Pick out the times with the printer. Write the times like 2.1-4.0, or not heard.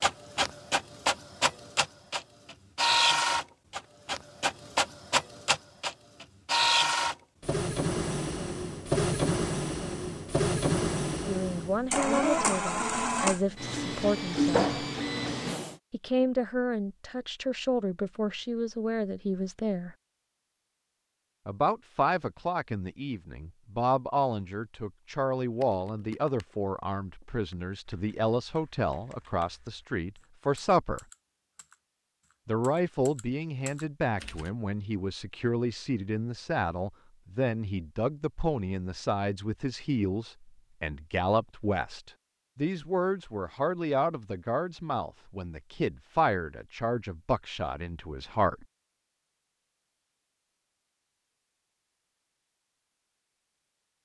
0.0-15.8.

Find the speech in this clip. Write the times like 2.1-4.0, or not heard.
11.2-14.7, 15.9-19.9, 21.4-31.1, 32.5-48.6.